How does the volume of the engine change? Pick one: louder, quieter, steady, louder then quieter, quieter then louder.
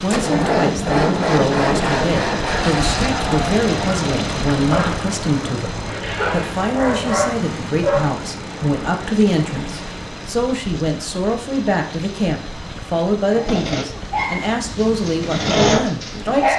quieter.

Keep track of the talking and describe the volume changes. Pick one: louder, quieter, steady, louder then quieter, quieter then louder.
steady.